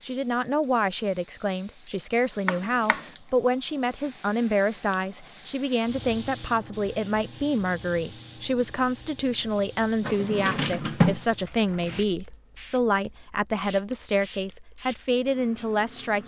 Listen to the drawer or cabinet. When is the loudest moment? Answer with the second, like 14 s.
11 s.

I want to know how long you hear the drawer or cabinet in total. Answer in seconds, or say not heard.
3 s.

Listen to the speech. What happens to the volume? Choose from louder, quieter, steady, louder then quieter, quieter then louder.
steady.